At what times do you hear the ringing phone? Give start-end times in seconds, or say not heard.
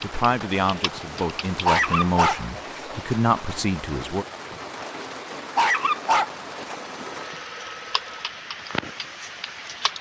6.7-8.3.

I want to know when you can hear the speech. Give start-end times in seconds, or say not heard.
0.0-4.2.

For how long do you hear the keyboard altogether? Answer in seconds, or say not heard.
4 s.